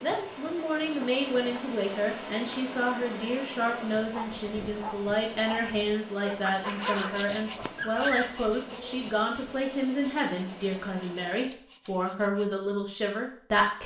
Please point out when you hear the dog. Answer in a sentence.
The dog can be heard from 4.0 to 9.1 s.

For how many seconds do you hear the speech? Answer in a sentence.
The speech can be heard for 14 seconds in total.